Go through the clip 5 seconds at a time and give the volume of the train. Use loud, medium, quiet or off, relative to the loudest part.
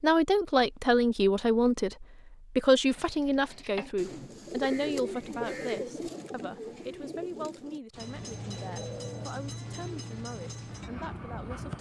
off, loud, loud.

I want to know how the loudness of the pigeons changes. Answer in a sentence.
The volume of the pigeons goes up, then down.